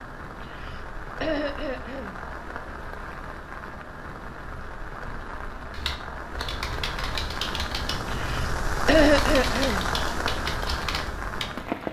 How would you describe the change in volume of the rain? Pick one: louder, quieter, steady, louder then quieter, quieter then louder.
louder.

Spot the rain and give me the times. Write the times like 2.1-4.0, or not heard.
0.0-11.8.